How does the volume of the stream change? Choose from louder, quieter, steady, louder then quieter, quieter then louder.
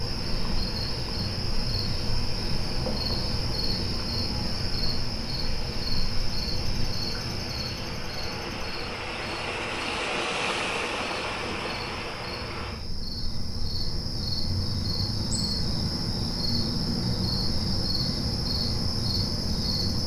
louder.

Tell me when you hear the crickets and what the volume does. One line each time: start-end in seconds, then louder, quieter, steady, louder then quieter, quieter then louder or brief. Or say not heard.
0.0-20.0 quieter then louder.